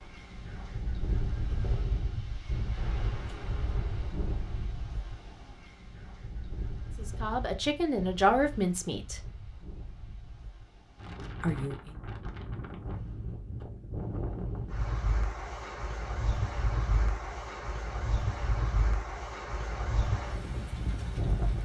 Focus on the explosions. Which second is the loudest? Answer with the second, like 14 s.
3 s.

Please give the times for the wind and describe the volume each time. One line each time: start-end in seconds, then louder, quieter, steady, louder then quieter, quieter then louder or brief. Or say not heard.
0.0-21.6 quieter then louder.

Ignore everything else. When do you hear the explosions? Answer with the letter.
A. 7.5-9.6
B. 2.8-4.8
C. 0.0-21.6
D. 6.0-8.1
B.